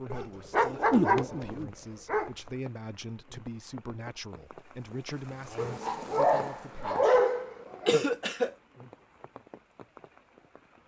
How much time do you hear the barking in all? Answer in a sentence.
You can hear the barking for 5 seconds altogether.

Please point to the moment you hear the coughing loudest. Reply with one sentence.
The loudest moment of the coughing is at 8 seconds.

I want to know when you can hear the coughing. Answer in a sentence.
The coughing can be heard from 0.6 to 1.0 s and from 7.8 to 8.6 s.